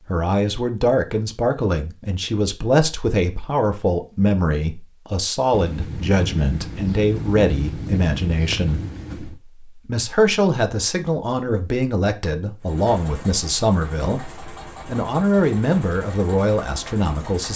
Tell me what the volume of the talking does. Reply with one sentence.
The loudness of the talking stays about the same.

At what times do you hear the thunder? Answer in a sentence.
You can hear the thunder from 5.5 to 9.4 s.